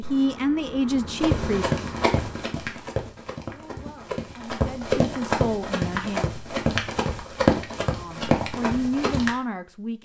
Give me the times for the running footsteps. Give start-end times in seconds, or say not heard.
1.2-9.3.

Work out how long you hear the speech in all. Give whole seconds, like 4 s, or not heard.
7 s.